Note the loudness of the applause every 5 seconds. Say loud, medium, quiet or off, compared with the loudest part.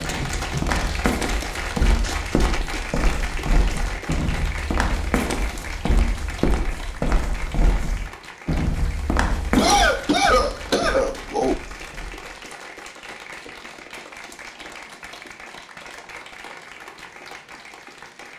loud, medium, medium, medium.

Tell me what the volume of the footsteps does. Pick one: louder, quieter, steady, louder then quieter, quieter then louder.
quieter.